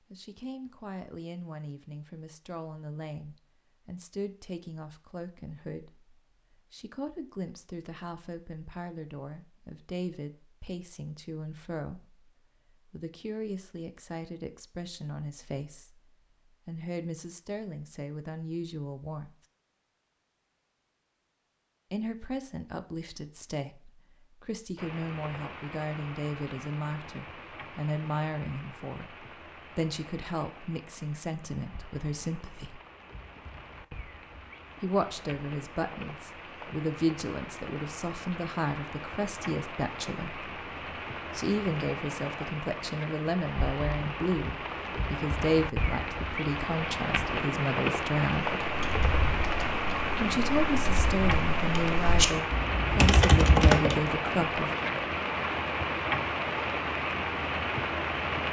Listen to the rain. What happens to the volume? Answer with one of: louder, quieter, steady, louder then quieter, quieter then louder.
louder.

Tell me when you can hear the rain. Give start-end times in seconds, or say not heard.
24.8-58.4.